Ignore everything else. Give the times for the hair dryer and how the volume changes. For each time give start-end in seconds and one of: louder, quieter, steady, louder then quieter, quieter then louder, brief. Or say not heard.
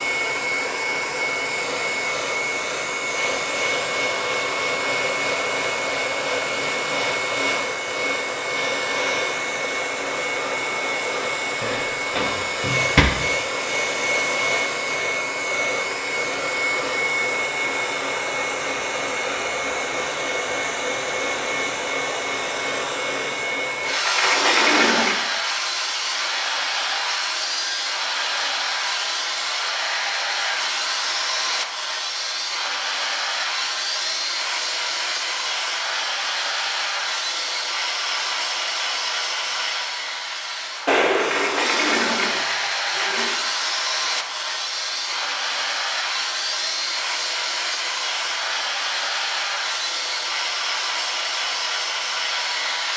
0.0-52.9 steady.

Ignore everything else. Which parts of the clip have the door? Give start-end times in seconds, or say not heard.
11.6-13.1, 23.8-25.1, 41.0-43.4.